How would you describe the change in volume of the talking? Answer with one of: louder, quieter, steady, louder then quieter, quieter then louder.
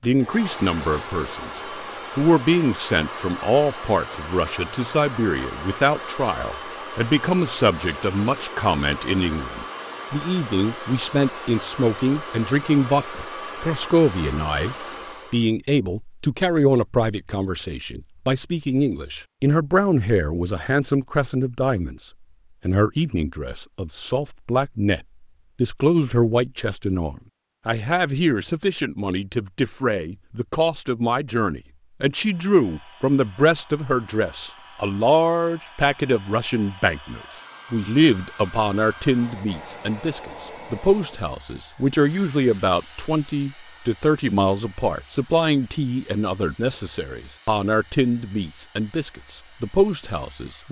steady.